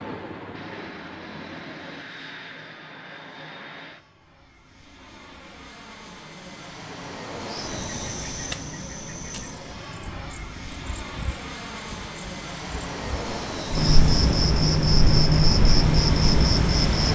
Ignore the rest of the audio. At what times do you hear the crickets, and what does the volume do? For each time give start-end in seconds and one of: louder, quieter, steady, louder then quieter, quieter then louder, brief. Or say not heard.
7.5-17.1 quieter then louder.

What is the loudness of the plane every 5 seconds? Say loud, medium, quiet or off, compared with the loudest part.
medium, medium, loud, loud.